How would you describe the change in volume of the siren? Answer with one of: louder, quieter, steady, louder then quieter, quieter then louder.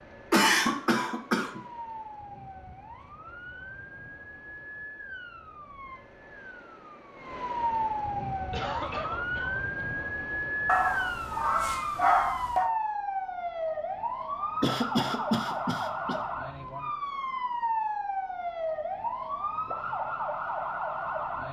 louder.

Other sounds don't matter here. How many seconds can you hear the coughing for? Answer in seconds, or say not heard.
4 s.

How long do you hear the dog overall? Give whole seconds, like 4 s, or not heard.
2 s.